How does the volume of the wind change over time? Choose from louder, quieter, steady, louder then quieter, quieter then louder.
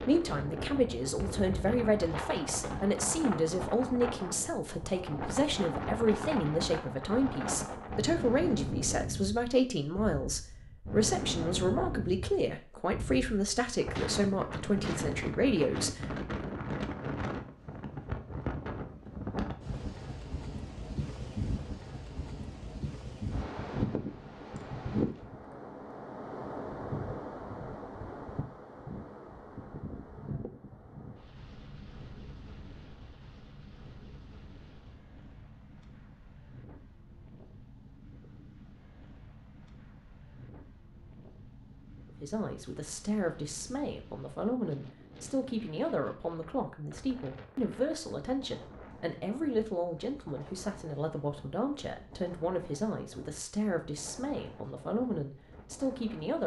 quieter.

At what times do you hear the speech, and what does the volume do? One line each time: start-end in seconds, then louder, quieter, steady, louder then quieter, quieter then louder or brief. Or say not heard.
0.0-16.5 steady
42.2-56.4 steady.